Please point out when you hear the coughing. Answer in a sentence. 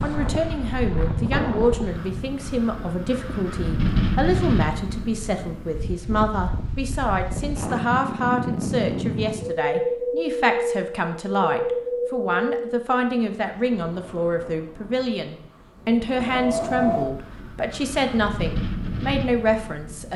The coughing can't be heard in this clip.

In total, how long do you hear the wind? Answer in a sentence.
The wind can be heard for 20 seconds in total.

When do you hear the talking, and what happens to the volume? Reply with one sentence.
The talking can be heard from 0.0 to 20.1 s, at a steady volume.